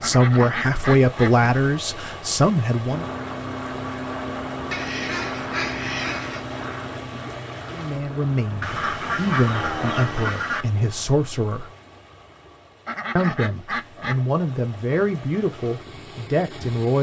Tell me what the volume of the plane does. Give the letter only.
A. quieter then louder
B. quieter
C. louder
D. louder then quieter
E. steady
A.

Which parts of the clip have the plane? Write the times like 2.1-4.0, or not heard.
2.9-10.3.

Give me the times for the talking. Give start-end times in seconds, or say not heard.
0.0-3.0, 7.7-11.7, 13.2-16.9.